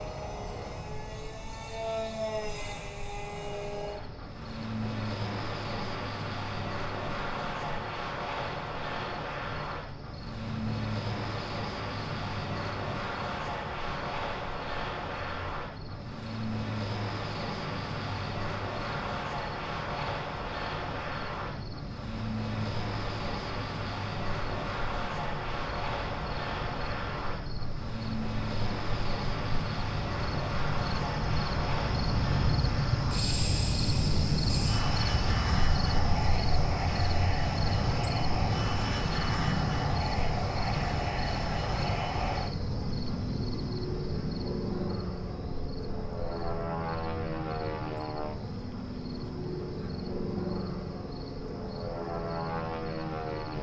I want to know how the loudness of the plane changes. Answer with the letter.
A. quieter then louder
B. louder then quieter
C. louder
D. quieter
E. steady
E.